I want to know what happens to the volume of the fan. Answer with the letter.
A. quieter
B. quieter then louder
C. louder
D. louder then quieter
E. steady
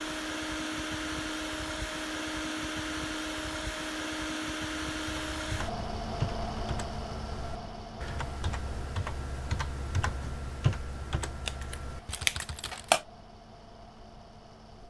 A.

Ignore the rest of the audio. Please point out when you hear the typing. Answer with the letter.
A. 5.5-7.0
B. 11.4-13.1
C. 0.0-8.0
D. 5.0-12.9
D.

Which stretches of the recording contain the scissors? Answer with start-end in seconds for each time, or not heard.
11.4-13.1.